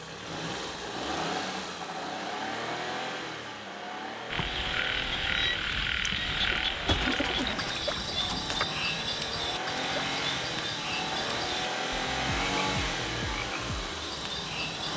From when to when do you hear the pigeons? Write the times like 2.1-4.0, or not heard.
6.8-8.7.